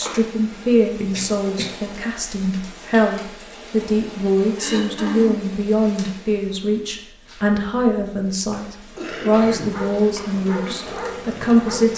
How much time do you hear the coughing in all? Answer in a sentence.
The coughing can be heard for 2 seconds in total.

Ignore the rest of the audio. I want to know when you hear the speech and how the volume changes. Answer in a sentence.
The speech can be heard from 0.0 to 11.9 s, at a steady volume.